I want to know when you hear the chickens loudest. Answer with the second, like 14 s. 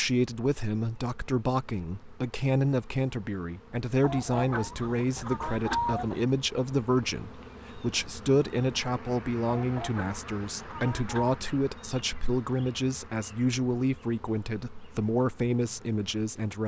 6 s.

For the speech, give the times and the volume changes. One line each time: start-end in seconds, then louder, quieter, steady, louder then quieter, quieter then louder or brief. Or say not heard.
0.0-16.6 steady.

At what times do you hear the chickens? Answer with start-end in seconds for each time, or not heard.
4.0-6.2, 9.6-11.4.